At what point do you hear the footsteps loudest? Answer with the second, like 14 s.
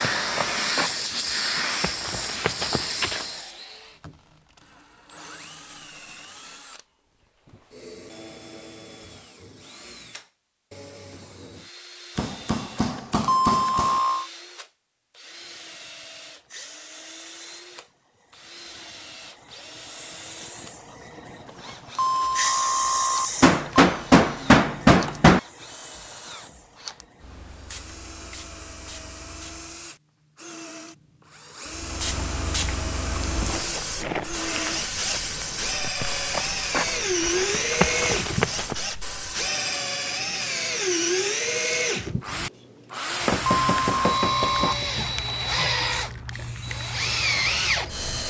38 s.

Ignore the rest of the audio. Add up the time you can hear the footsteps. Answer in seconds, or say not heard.
9 s.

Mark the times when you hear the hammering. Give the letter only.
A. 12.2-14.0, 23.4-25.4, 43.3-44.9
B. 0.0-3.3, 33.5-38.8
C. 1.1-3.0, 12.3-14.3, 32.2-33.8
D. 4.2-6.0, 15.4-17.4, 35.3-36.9
A.